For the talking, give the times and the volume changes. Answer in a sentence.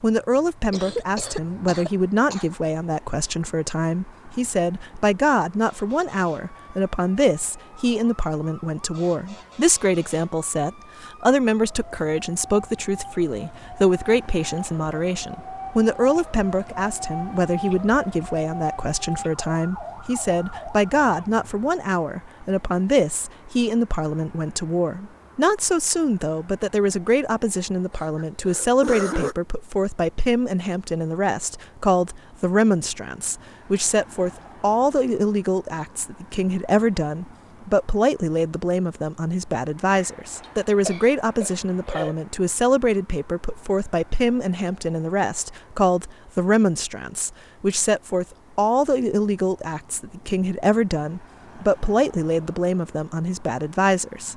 You can hear the talking from 0.0 to 54.3 s, at a steady volume.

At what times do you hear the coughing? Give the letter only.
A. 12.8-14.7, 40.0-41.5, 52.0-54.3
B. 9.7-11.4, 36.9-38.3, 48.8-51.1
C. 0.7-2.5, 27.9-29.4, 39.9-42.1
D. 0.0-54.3
C.